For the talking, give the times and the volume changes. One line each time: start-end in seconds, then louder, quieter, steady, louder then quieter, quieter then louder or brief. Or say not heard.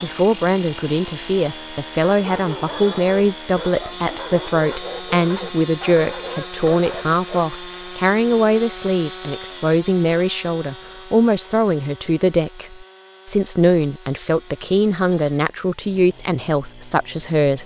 0.0-17.6 steady.